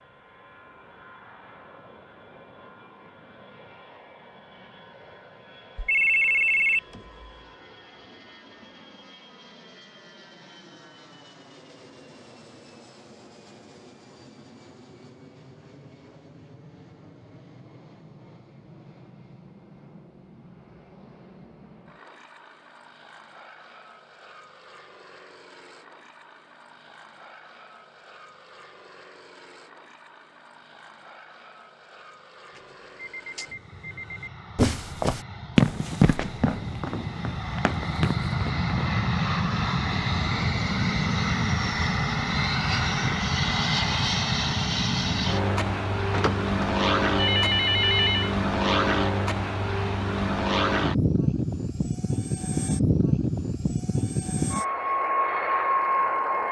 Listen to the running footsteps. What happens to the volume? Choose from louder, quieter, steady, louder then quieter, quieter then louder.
quieter then louder.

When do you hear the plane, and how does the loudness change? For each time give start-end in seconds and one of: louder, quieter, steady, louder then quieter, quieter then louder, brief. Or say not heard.
0.0-56.4 louder.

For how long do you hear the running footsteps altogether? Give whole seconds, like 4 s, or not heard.
4 s.